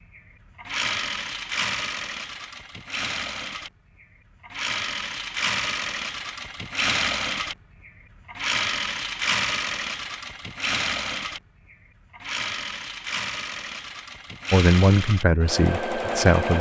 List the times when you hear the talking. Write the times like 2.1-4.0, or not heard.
14.5-16.5.